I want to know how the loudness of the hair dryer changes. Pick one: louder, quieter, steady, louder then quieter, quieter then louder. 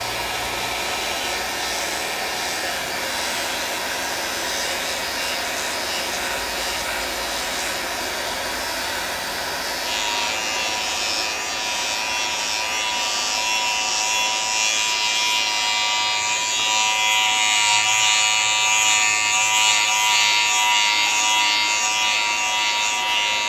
quieter.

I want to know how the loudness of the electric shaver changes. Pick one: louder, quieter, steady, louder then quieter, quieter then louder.
louder.